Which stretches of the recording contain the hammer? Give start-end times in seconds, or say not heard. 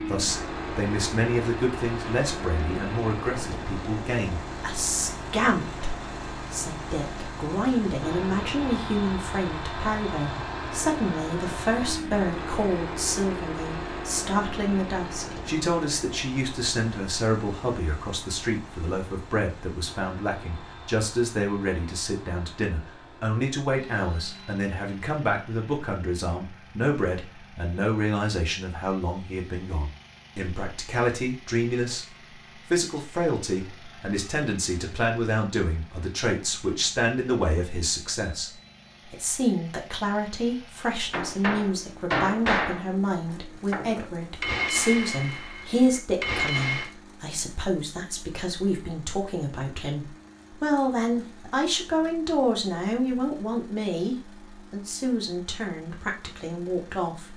41.1-46.9.